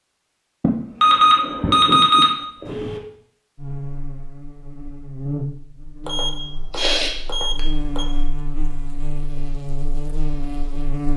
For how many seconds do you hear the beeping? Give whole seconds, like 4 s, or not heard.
4 s.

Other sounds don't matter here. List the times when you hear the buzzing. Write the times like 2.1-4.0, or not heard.
3.5-11.1.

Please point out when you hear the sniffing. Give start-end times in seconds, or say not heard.
0.6-2.9, 6.7-7.6.